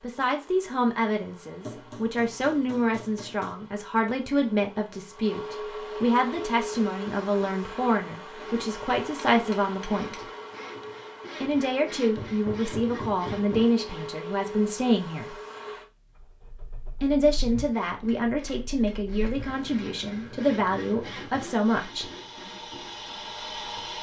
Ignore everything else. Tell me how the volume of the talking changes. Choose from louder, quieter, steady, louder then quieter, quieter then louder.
steady.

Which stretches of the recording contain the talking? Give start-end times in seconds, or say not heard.
0.0-10.2, 11.4-15.3, 17.0-22.1.